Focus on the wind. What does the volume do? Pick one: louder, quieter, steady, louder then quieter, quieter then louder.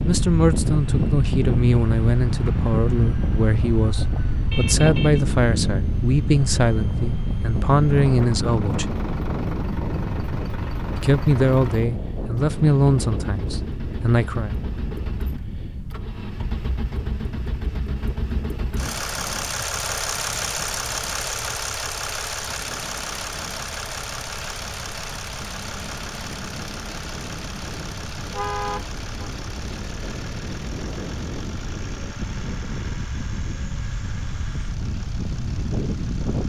quieter then louder.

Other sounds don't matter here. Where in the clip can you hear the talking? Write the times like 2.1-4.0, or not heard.
0.1-8.8, 10.9-14.6.